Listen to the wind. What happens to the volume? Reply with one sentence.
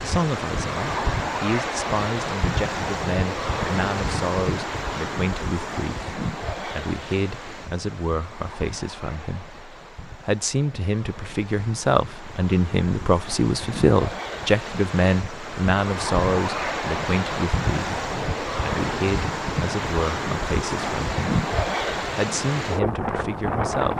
The loudness of the wind goes down, then up.